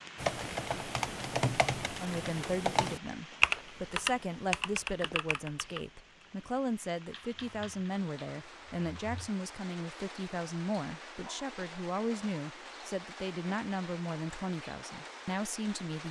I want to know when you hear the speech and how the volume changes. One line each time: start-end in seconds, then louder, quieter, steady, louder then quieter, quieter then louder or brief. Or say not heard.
2.0-16.0 steady.